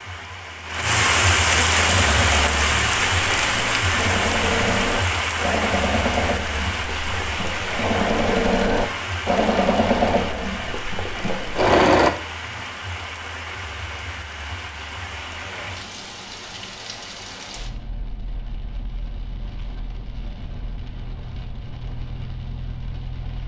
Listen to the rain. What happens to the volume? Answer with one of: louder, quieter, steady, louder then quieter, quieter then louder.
quieter.